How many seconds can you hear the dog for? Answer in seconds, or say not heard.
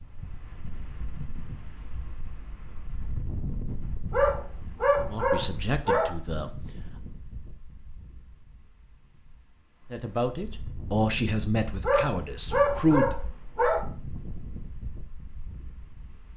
4 s.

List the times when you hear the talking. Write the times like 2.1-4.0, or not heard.
5.1-6.7, 9.9-13.2.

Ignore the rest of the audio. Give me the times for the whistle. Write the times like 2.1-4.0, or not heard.
not heard.